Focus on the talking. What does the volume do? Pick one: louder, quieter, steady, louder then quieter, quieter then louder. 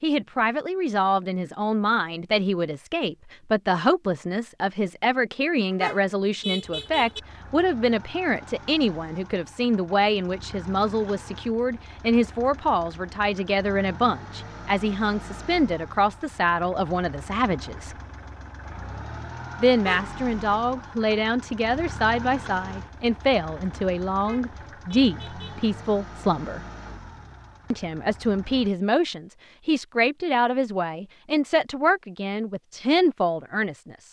steady.